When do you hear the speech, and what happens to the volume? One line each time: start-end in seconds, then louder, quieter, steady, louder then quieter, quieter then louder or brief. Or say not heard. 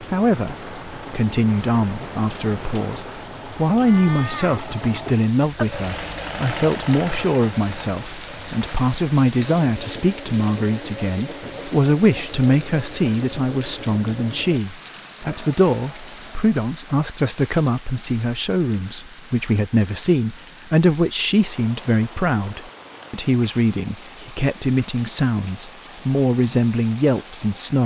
0.0-27.8 steady.